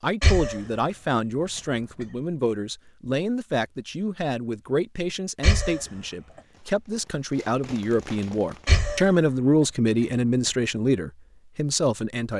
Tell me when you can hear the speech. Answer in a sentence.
You can hear the speech from 0.0 to 12.3 s.